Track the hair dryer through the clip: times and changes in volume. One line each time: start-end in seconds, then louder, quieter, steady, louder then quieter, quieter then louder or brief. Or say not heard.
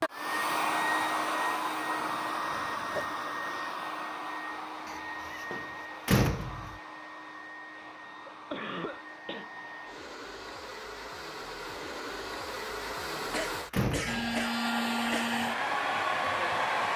0.0-16.9 quieter then louder.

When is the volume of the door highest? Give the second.
6 s.